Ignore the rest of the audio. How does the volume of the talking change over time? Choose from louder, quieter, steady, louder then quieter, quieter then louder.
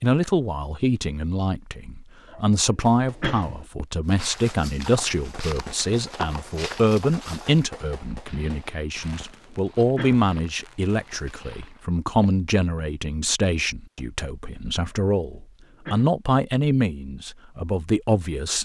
steady.